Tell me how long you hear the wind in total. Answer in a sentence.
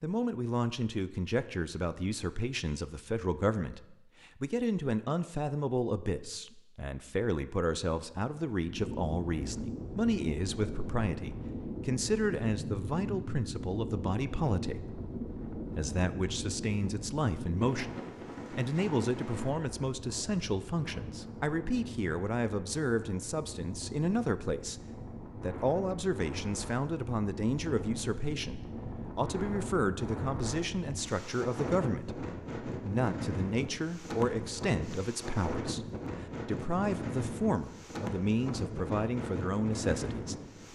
You can hear the wind for 32 seconds altogether.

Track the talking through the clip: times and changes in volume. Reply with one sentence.
You can hear the talking from 0.0 to 40.4 s, at a steady volume.